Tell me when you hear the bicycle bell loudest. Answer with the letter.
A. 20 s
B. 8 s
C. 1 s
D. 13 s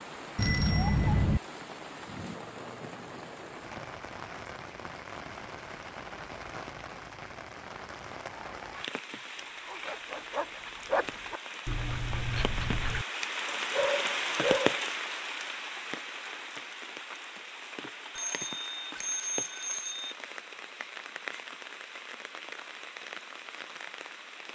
C.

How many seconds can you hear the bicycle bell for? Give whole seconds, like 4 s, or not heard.
3 s.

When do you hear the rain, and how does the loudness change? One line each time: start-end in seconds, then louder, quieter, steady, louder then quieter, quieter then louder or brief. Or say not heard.
0.0-24.5 louder then quieter.